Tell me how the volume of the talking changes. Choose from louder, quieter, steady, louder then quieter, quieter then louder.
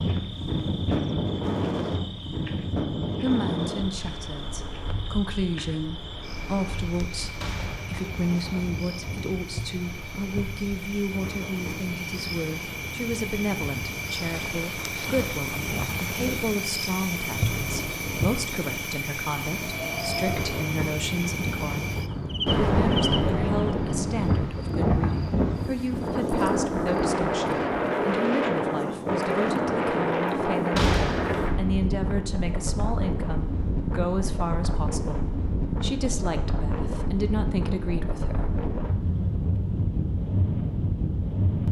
steady.